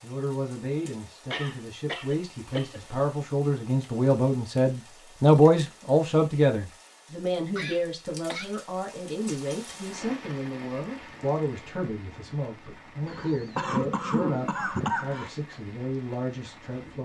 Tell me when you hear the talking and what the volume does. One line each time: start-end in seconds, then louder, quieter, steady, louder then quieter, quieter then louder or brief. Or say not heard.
0.0-17.0 louder then quieter.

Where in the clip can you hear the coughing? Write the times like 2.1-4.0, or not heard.
1.3-2.8, 7.5-8.6, 13.1-15.3.